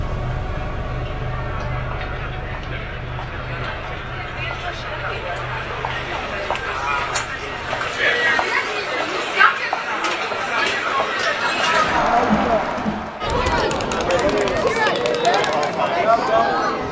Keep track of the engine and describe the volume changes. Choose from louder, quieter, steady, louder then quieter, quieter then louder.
quieter.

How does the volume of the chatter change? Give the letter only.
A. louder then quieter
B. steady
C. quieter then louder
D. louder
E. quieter
D.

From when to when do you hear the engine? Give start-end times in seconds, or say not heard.
0.0-8.1.